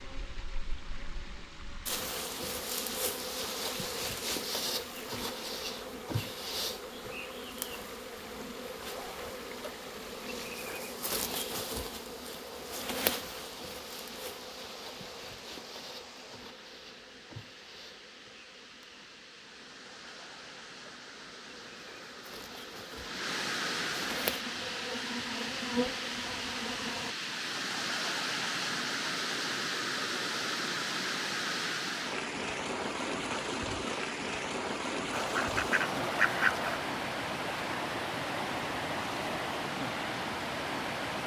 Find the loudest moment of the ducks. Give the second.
36 s.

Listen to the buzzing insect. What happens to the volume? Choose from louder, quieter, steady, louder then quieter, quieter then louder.
quieter then louder.